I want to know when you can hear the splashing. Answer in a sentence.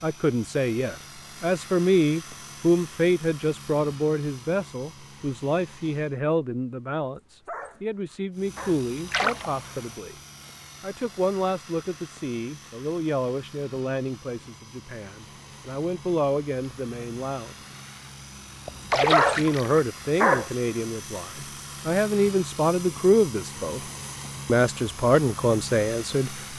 The splashing can be heard from 9.1 to 9.5 s and from 18.9 to 19.8 s.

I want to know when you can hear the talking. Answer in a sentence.
You can hear the talking from 0.0 to 10.2 s, from 10.8 to 17.6 s, from 18.9 to 23.8 s and from 24.4 to 26.3 s.